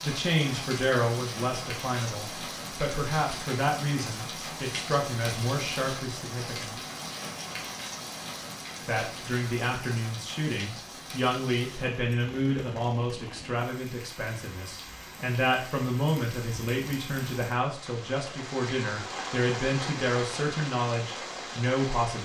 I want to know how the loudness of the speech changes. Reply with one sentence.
The loudness of the speech stays about the same.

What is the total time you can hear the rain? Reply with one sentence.
You can hear the rain for 22 seconds altogether.